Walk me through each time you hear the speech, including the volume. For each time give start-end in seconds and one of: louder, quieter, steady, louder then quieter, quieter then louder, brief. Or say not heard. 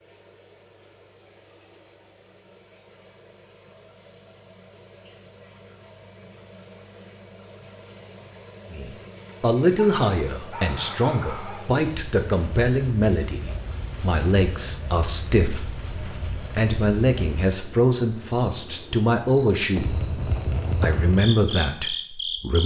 8.7-22.6 steady.